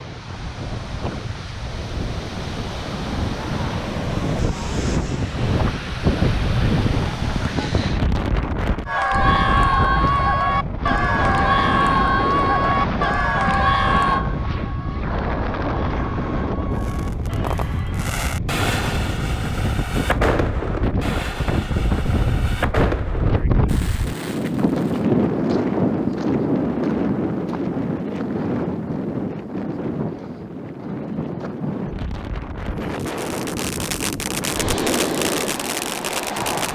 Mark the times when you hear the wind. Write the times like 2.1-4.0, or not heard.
0.0-36.6.